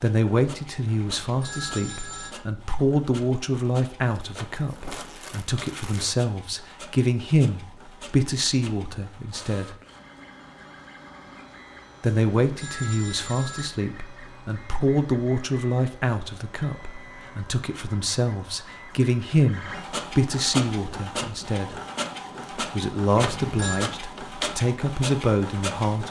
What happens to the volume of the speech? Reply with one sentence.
The volume of the speech stays about the same.